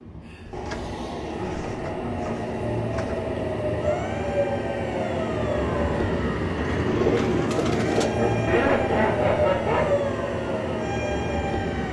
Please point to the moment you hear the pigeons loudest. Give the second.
7 s.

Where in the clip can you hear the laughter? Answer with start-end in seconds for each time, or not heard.
1.4-2.4, 8.2-9.9.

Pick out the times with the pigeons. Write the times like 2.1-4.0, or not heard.
0.5-3.3, 6.5-8.1.